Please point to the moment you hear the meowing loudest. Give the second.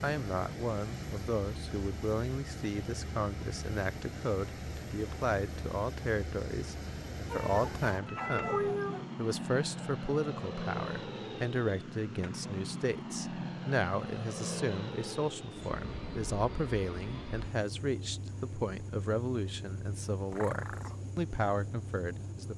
9 s.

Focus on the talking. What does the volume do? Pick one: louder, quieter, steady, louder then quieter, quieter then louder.
steady.